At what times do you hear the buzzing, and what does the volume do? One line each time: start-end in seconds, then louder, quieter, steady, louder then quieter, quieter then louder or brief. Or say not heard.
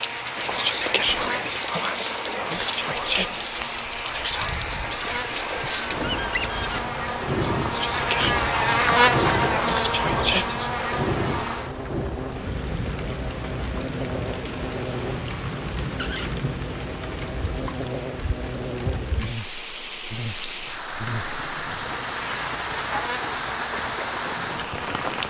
0.0-25.2 louder then quieter.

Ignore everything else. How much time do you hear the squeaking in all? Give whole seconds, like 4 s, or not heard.
2 s.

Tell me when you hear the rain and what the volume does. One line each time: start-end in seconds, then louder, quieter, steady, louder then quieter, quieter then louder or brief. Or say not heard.
0.0-25.2 steady.